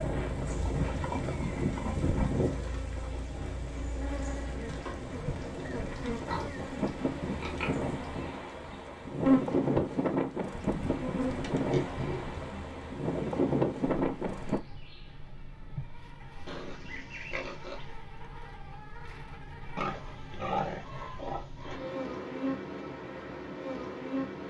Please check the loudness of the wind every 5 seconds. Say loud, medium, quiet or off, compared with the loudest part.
medium, loud, loud, off, off.